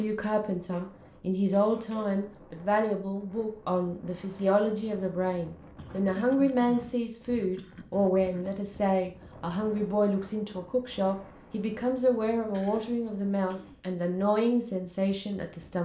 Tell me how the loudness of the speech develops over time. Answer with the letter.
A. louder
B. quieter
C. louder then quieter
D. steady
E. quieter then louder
D.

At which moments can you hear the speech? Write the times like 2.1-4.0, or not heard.
0.0-15.8.